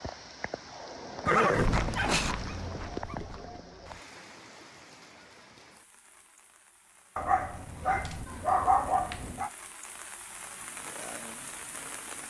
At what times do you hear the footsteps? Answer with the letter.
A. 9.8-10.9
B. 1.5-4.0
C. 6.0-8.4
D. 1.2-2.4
B.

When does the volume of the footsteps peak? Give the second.
2 s.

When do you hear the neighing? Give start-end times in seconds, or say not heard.
1.2-2.4.